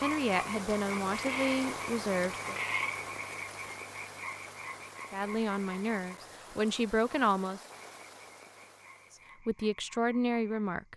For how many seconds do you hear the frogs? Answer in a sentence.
You can hear the frogs for 11 seconds altogether.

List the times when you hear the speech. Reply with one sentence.
You can hear the speech from 0.0 to 2.6 s, from 5.1 to 7.6 s and from 9.4 to 10.9 s.